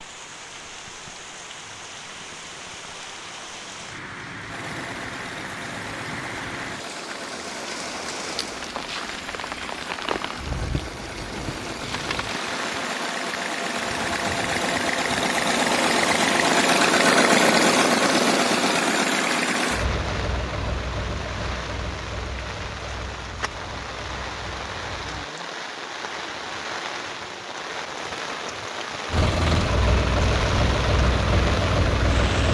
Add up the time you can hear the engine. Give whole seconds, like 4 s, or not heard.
24 s.